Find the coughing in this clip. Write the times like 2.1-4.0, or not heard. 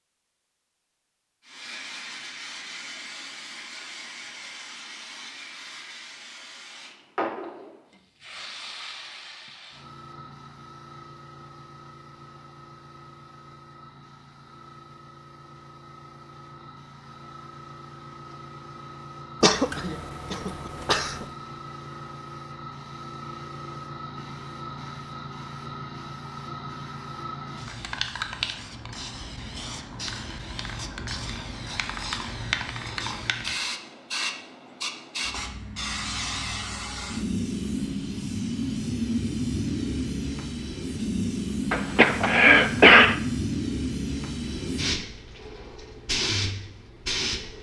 19.4-21.2, 41.7-43.1.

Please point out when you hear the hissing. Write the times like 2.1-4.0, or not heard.
1.4-47.5.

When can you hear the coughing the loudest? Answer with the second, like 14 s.
43 s.